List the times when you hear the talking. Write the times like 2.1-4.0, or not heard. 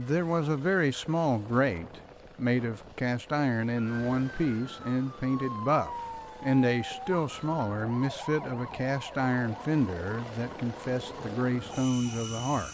0.0-12.6.